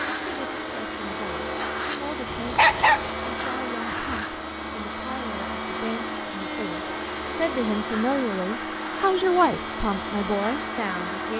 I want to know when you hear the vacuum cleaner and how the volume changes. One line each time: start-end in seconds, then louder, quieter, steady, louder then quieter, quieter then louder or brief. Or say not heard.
0.0-11.3 steady.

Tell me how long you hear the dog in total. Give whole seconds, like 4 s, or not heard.
2 s.